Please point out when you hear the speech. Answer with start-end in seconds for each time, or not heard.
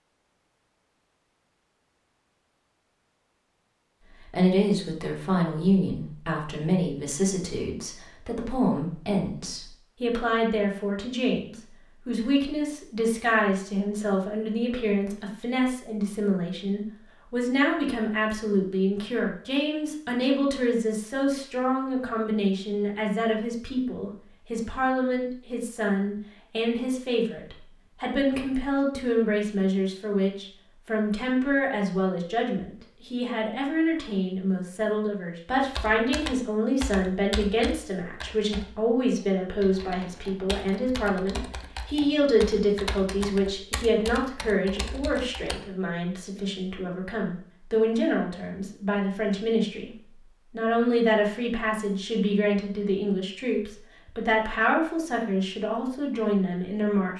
4.2-57.1.